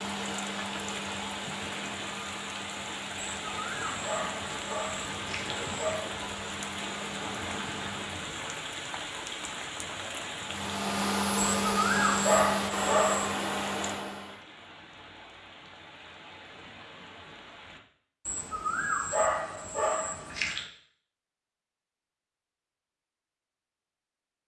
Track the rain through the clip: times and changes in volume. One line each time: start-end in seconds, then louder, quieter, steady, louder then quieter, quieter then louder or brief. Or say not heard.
0.0-17.8 quieter.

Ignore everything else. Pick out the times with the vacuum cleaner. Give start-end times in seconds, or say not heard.
0.0-8.2, 10.4-14.4.